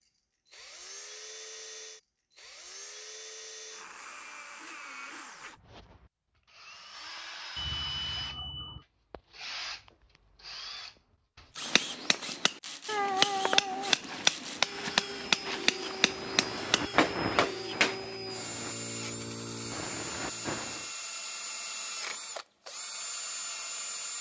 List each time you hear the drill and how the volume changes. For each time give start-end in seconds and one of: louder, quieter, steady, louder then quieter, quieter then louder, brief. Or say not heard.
0.1-24.1 louder.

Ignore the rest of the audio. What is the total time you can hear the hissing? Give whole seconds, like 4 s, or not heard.
5 s.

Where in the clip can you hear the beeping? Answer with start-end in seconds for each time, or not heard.
7.5-8.8.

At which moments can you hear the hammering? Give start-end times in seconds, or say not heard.
11.6-18.0.